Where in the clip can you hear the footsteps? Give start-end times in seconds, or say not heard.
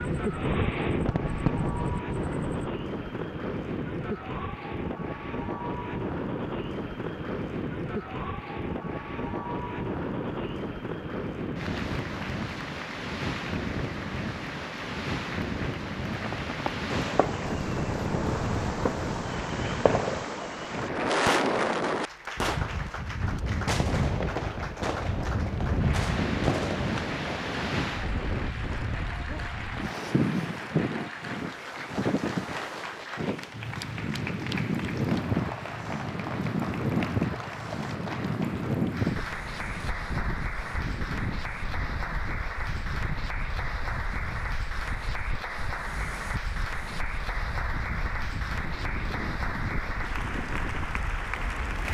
not heard.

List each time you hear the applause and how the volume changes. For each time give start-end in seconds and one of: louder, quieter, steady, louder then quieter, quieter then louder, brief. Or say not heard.
0.2-51.9 louder.